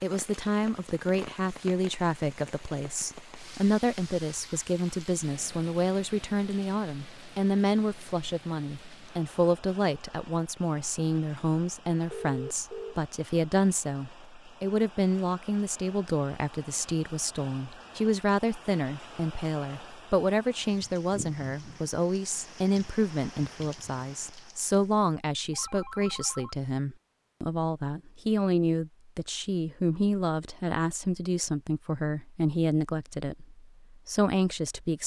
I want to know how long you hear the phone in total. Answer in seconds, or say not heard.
2 s.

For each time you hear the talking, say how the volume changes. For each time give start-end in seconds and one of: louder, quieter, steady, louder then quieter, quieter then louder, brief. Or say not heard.
0.0-35.0 steady.